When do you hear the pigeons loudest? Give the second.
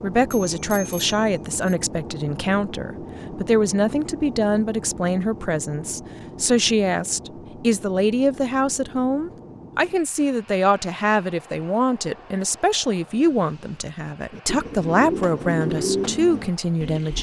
16 s.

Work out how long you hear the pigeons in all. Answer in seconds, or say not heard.
3 s.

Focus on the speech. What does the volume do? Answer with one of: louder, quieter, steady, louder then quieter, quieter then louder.
steady.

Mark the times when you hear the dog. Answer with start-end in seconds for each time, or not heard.
not heard.